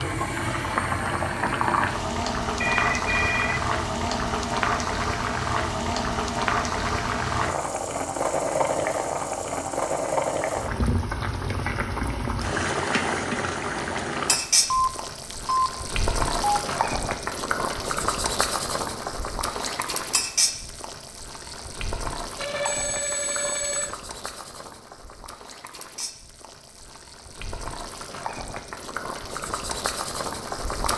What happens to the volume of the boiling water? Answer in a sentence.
The loudness of the boiling water goes down.